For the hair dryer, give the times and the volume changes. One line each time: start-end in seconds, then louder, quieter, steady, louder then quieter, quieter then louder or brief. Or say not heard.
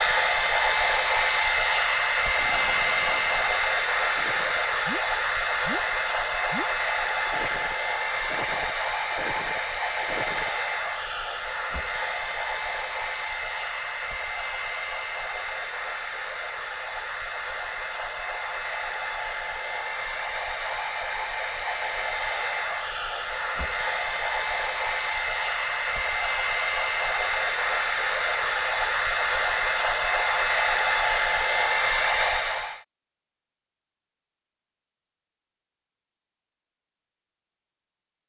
0.0-32.8 quieter then louder.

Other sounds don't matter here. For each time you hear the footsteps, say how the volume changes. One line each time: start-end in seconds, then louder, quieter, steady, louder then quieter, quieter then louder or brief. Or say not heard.
not heard.